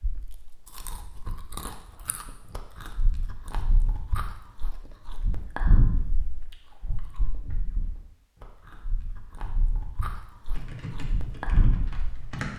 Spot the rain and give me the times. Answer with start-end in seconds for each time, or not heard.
not heard.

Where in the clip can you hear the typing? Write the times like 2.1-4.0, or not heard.
10.5-12.5.